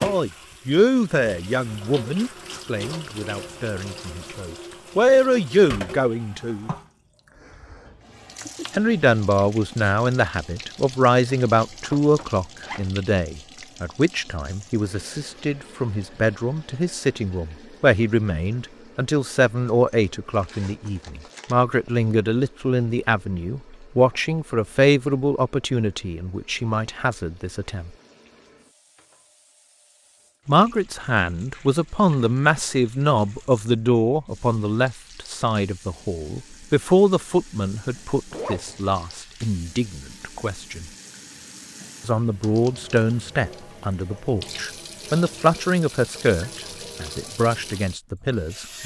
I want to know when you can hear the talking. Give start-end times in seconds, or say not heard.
0.0-6.7, 8.7-27.9, 30.4-40.9, 42.0-48.8.